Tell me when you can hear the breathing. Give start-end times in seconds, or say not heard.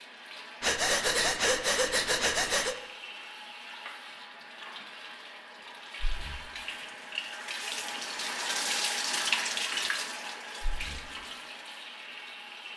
0.6-2.8, 6.0-6.5, 10.6-11.1.